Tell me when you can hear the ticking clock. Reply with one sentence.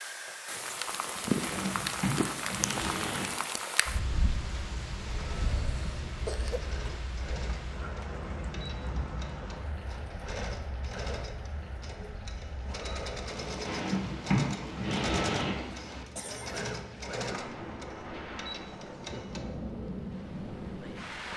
You can't hear the ticking clock here.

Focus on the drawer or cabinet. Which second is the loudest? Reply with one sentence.
The loudest moment of the drawer or cabinet is at 14 seconds.